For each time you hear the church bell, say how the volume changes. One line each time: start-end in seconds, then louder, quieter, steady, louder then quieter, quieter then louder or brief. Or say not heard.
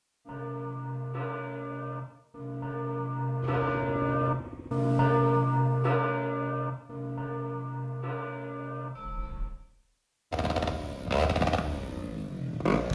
0.2-9.6 louder then quieter.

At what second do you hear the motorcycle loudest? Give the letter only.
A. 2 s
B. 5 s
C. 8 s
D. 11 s
D.